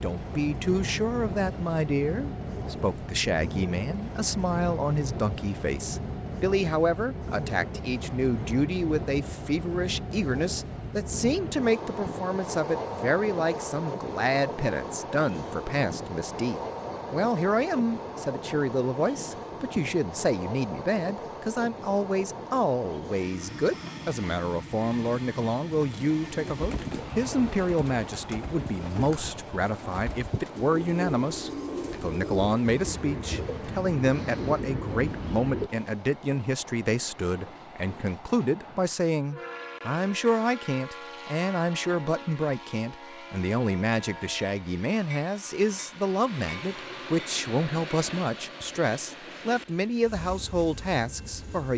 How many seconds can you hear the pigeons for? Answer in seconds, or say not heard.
10 s.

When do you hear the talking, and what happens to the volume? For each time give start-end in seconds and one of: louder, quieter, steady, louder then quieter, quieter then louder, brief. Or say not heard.
0.0-51.7 steady.